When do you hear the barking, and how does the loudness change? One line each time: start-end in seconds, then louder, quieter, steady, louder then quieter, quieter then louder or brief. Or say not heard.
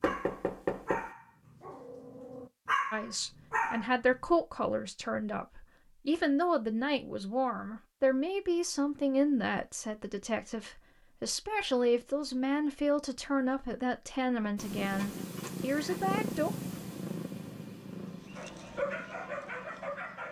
0.0-4.3 quieter then louder
18.0-20.2 brief.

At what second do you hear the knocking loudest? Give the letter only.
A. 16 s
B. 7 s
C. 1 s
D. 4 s
C.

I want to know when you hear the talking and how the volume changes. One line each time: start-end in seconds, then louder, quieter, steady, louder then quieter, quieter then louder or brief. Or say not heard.
2.9-16.5 steady.